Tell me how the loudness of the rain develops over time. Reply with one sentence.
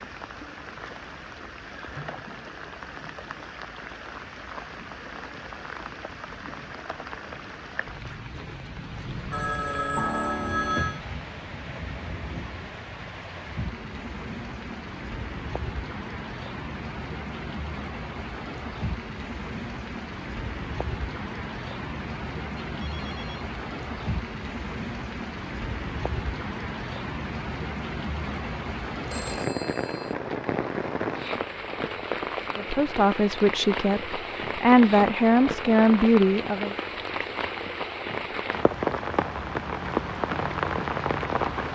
The volume of the rain goes up.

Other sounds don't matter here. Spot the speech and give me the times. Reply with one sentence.
You can hear the speech from 32.5 to 36.8 s.